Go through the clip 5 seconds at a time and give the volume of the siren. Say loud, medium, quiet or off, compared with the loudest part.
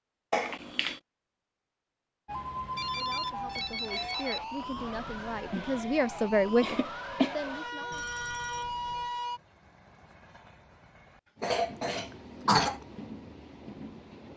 loud, loud, off.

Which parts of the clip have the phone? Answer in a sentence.
The phone can be heard from 2.8 to 4.7 s and from 7.9 to 9.1 s.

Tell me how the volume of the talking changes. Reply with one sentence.
The volume of the talking goes up, then down.